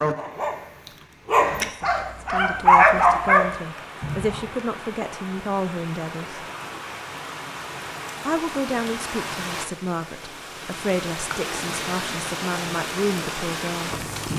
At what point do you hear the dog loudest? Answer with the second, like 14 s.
3 s.